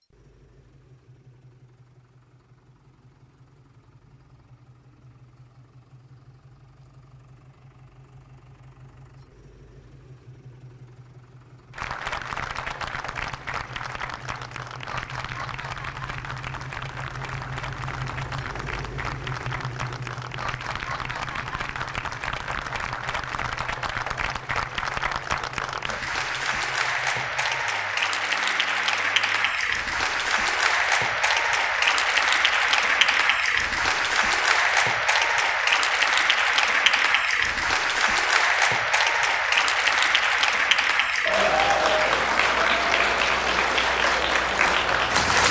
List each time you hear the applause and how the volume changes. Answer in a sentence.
You can hear the applause from 11.7 to 45.4 s, getting louder.